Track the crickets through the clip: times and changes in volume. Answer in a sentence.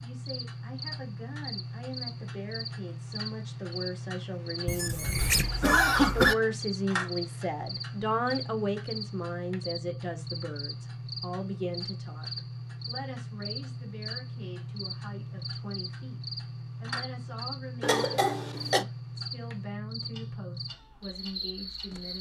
You can hear the crickets from 0.0 to 22.1 s, at a steady volume.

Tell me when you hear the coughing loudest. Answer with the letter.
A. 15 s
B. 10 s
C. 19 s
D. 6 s
D.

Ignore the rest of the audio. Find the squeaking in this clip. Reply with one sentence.
The squeaking can be heard from 4.7 to 5.5 s.